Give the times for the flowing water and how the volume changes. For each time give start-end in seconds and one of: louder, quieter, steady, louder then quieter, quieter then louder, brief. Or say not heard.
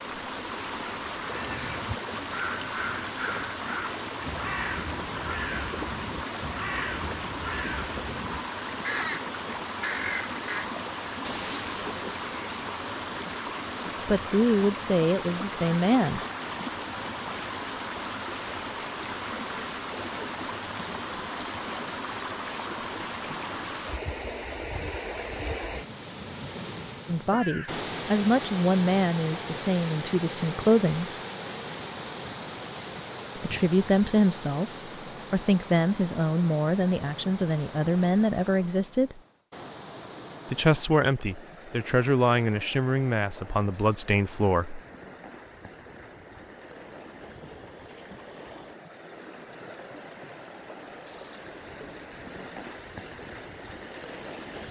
0.0-54.6 quieter.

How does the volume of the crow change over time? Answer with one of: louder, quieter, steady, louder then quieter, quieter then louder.
steady.